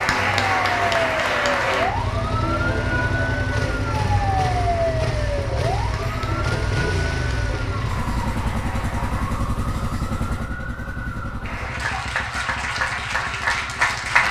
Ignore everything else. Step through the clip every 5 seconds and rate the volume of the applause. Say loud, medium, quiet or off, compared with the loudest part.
loud, quiet, loud.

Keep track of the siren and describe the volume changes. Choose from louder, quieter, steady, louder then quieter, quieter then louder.
quieter.